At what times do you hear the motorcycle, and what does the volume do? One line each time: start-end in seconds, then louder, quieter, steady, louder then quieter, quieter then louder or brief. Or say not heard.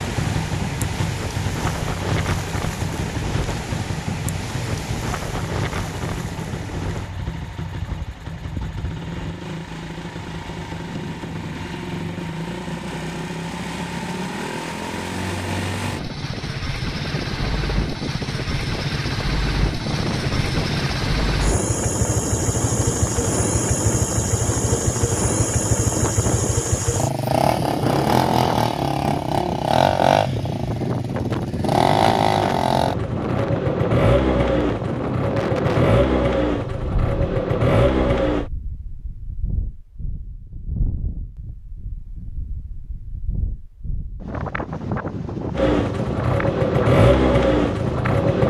0.0-38.5 louder
45.5-48.4 brief.